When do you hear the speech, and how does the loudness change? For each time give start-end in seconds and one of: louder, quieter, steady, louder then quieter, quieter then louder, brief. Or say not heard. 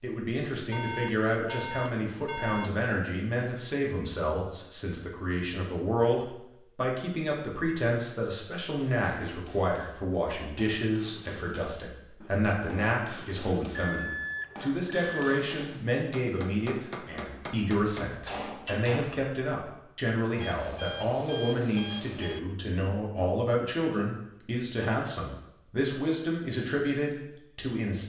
0.0-28.0 steady.